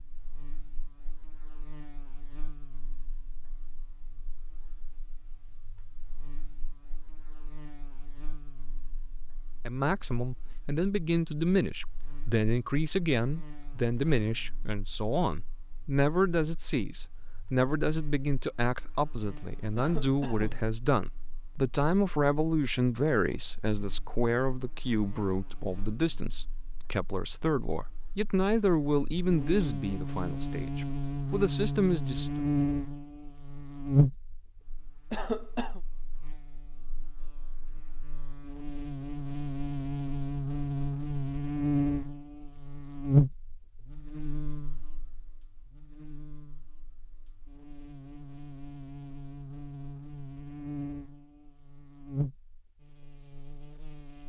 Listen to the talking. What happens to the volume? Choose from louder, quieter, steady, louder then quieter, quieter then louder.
steady.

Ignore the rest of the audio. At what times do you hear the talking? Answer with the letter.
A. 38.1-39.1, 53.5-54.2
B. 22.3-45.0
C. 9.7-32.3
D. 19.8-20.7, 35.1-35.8
C.